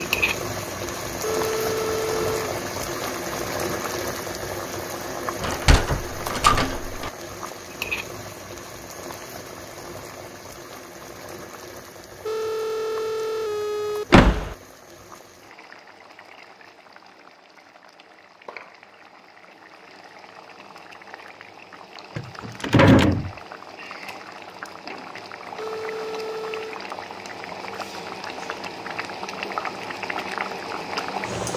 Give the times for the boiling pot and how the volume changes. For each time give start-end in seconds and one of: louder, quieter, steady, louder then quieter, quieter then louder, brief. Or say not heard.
0.0-31.5 quieter then louder.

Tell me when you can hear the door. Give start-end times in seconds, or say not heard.
5.4-7.1, 14.1-14.6, 22.1-23.3.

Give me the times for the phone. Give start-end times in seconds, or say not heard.
1.2-2.5, 12.2-14.1, 25.6-26.9.